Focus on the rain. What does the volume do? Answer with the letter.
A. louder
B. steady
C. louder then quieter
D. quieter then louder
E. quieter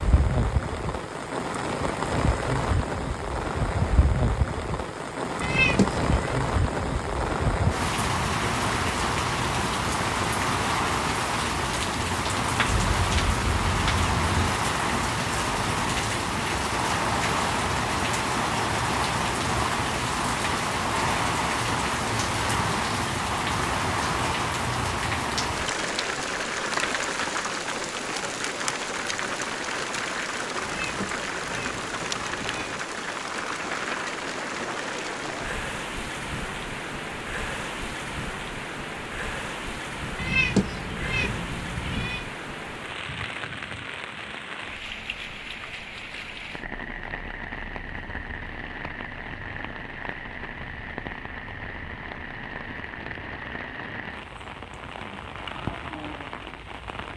E.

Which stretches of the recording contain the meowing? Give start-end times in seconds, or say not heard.
5.4-6.3, 30.6-32.8, 40.1-42.2.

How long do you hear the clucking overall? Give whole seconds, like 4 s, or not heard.
2 s.